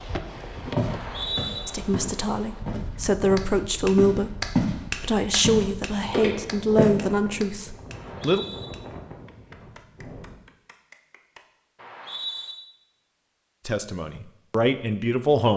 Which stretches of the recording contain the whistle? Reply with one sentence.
The whistle can be heard from 0.8 to 1.6 s, from 7.9 to 8.7 s and from 11.8 to 12.6 s.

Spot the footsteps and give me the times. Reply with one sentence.
The footsteps can be heard from 0.8 to 4.8 s and from 5.4 to 6.9 s.